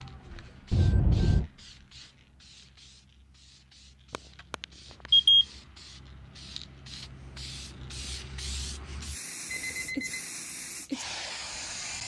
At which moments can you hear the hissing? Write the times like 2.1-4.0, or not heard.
0.0-12.0.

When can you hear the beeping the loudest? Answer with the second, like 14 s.
5 s.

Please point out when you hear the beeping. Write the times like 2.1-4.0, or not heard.
0.7-1.5, 4.1-5.5, 9.4-10.2.